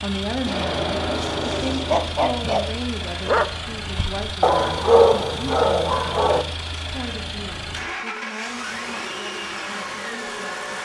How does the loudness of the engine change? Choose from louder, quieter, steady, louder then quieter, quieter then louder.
steady.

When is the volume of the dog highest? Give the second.
5 s.